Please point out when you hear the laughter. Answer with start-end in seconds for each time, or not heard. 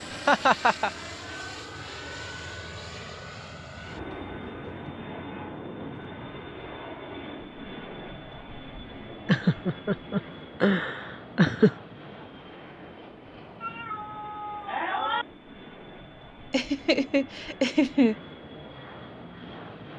0.1-0.9, 9.2-11.8, 16.5-18.1.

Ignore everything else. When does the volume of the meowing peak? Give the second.
15 s.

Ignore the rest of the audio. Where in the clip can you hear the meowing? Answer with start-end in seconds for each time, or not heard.
13.6-15.2.